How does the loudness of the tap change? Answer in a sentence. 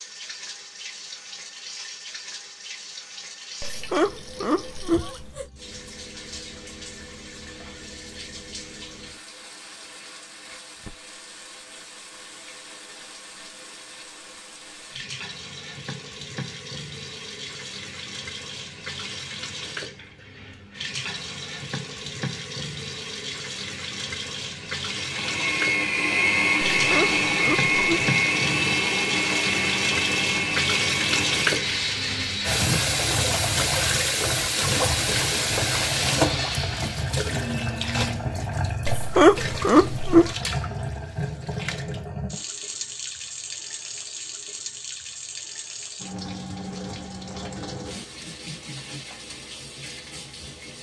The volume of the tap goes up, then down.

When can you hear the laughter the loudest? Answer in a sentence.
The loudest moment of the laughter is at 39 seconds.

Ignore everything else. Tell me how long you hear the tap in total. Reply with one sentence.
The tap can be heard for 51 seconds in total.